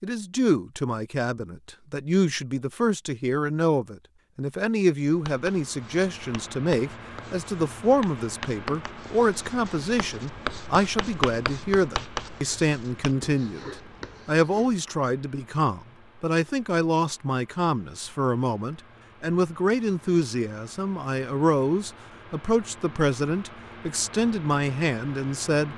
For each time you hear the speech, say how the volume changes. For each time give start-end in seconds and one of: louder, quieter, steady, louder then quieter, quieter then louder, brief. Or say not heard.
0.0-25.7 steady.